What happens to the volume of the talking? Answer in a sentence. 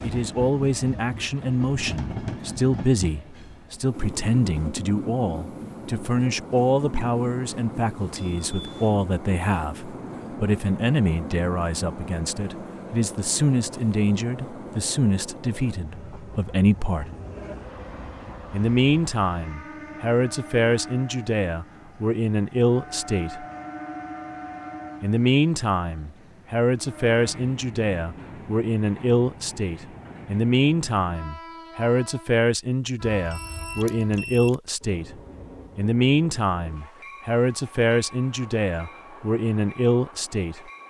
The volume of the talking stays about the same.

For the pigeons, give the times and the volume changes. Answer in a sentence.
The pigeons can't be heard in this clip.